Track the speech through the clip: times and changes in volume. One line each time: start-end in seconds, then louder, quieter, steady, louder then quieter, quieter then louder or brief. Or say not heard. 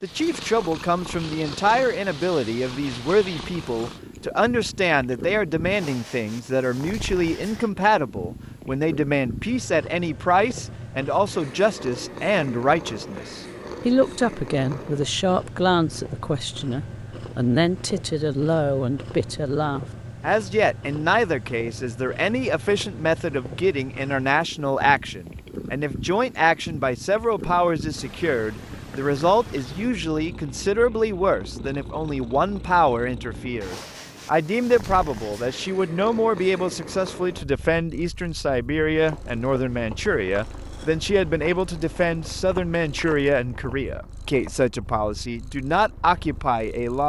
0.0-47.0 steady.